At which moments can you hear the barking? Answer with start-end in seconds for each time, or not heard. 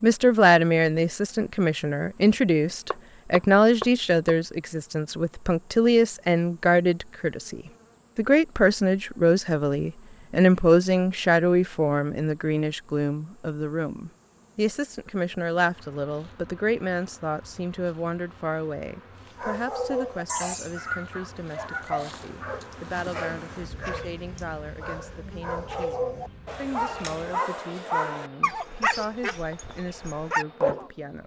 19.4-30.9.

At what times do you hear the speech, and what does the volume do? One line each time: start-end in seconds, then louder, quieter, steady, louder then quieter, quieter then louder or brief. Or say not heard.
0.0-31.2 quieter.